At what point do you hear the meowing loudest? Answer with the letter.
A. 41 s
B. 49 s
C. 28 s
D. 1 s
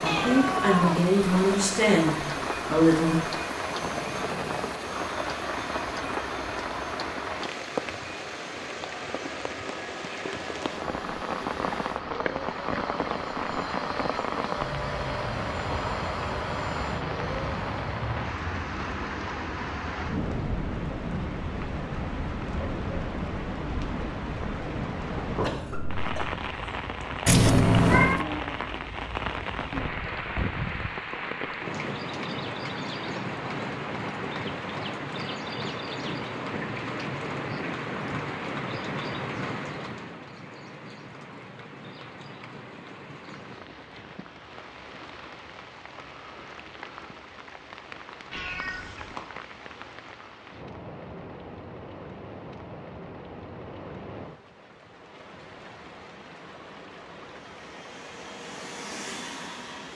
C.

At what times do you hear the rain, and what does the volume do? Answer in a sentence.
You can hear the rain from 0.0 to 59.8 s, getting quieter.